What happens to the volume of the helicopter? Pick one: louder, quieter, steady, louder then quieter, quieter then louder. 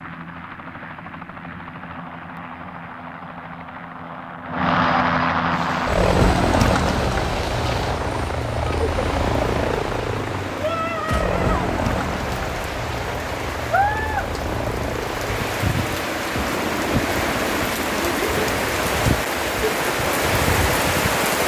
louder then quieter.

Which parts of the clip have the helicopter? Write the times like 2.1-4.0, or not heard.
0.0-21.4.